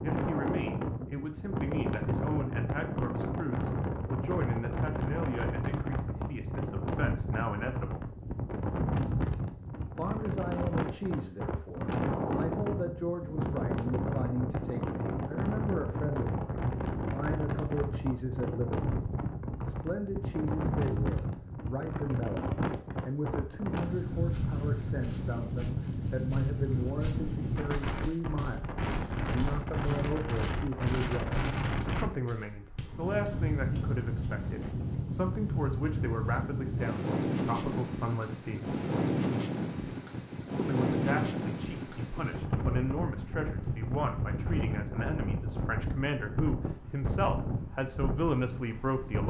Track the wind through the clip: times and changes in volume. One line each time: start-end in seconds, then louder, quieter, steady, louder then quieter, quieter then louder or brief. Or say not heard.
0.0-49.2 steady.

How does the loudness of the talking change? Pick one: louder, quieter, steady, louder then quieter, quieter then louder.
steady.